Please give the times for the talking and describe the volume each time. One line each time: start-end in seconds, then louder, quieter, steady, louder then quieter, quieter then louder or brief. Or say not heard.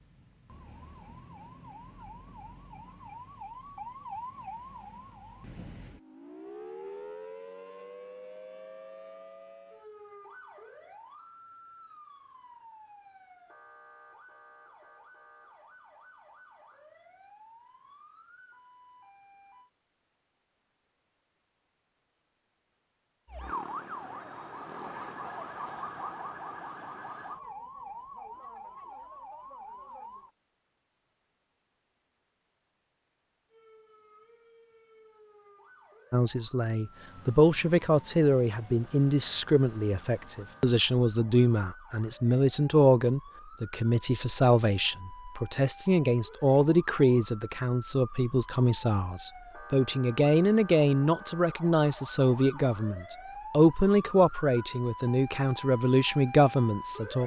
36.1-57.2 steady.